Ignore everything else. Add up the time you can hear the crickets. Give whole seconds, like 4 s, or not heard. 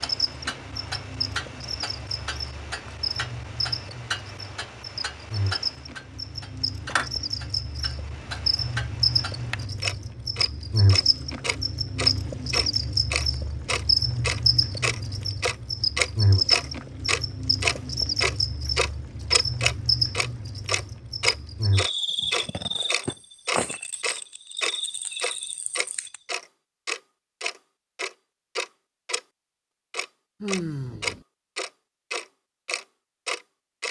26 s.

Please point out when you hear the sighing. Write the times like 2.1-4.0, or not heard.
30.4-31.2.